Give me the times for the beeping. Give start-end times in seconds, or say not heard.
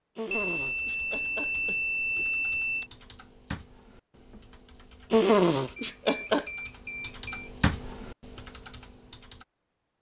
0.3-2.9, 5.8-7.5.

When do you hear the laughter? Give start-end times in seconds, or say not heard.
0.1-2.2, 5.1-6.5.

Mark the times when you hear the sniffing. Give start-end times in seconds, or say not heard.
not heard.